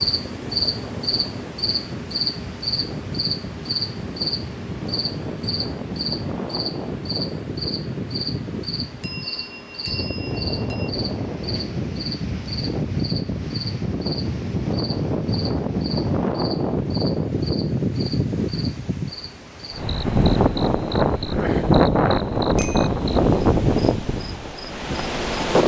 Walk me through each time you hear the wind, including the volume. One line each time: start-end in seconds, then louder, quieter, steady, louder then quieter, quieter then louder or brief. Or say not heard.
0.0-25.6 louder.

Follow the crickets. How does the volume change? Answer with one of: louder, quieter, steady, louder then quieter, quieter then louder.
quieter.